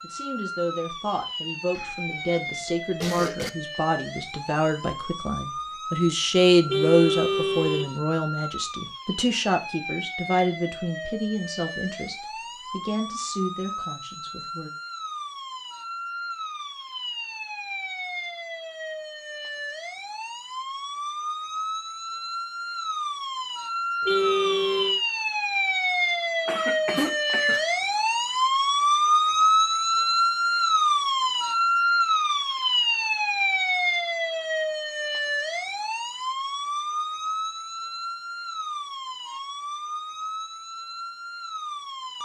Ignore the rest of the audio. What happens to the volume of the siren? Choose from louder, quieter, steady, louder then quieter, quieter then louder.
louder then quieter.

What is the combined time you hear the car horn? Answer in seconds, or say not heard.
2 s.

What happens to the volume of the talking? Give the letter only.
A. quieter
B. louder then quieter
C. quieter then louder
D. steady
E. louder
B.